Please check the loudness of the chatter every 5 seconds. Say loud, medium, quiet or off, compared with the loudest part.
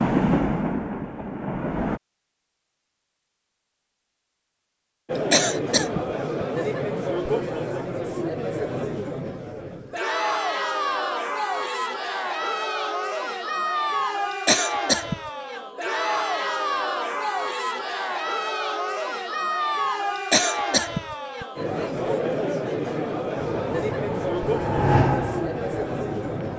off, loud, loud, loud, loud, loud.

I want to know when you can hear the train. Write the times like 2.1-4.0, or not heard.
0.0-2.0, 23.4-26.5.